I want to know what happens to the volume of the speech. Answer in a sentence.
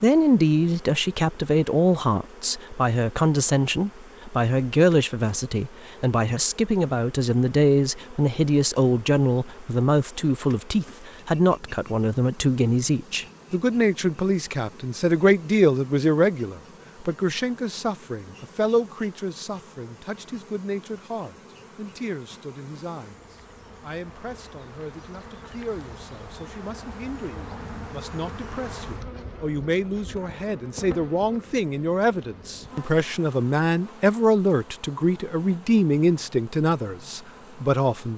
The volume of the speech goes down, then up.